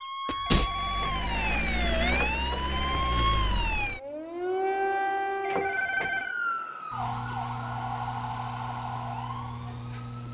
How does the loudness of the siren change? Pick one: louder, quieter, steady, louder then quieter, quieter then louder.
quieter.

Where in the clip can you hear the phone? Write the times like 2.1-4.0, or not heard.
0.5-3.2, 5.4-6.3.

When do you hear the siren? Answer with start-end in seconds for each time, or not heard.
0.0-10.3.